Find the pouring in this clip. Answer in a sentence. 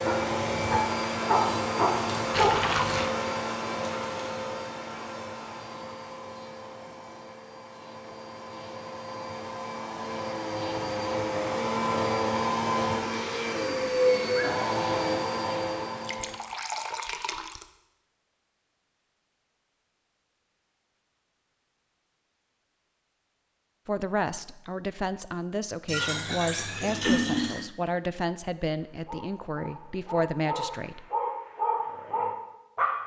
You can hear the pouring from 2.3 to 3.1 s, from 16.0 to 17.6 s and from 25.9 to 27.7 s.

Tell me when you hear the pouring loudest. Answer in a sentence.
The loudest moment of the pouring is at 27 seconds.